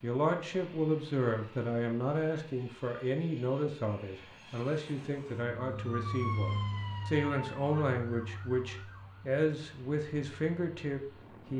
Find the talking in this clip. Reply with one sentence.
You can hear the talking from 0.0 to 11.5 s.